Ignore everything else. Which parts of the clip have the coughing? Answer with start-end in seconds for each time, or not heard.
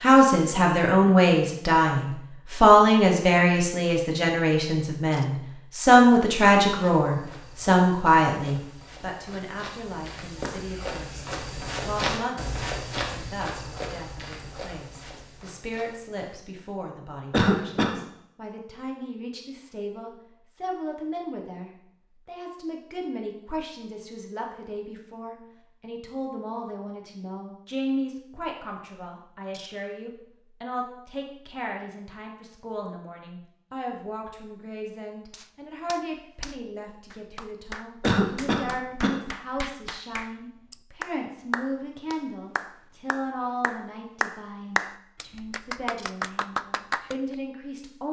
17.3-18.0, 38.0-39.2.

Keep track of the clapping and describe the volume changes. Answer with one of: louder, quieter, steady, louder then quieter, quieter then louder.
louder.